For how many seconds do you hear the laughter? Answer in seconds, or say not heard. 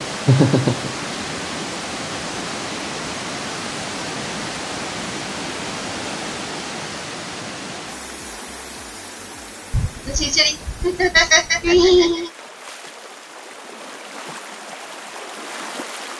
3 s.